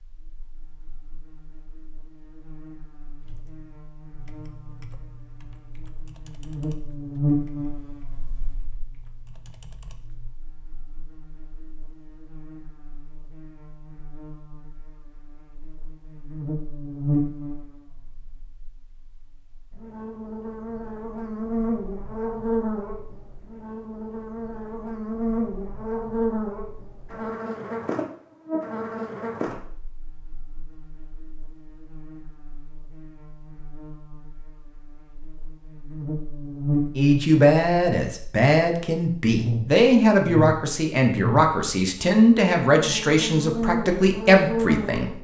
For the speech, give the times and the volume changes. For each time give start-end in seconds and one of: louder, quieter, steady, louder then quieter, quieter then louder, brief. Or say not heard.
37.0-45.1 steady.